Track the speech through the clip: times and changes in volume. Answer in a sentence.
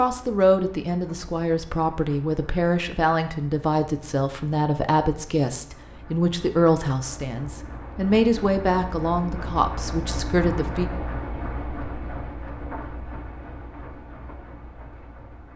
You can hear the speech from 0.0 to 10.8 s, at a steady volume.